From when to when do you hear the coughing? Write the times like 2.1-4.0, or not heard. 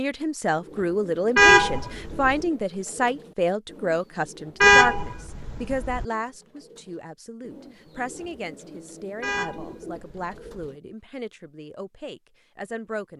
not heard.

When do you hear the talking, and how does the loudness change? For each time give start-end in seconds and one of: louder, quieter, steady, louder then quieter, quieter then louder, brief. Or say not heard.
0.0-13.1 quieter.